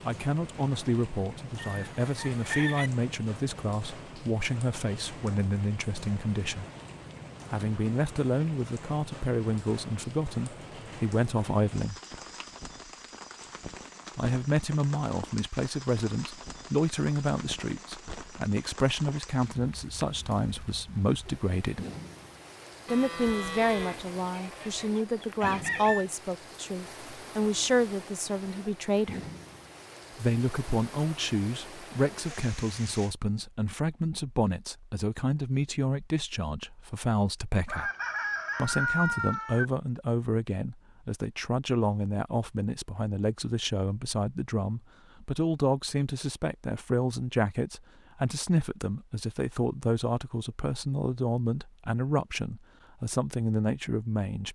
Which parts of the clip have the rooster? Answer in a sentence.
The rooster can be heard from 1.6 to 2.9 s, from 22.9 to 26.1 s and from 37.6 to 39.6 s.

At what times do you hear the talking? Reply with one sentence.
You can hear the talking from 0.0 to 6.7 s, from 7.5 to 11.9 s, from 14.2 to 21.8 s, from 22.9 to 29.2 s, from 30.1 to 37.9 s and from 38.5 to 54.4 s.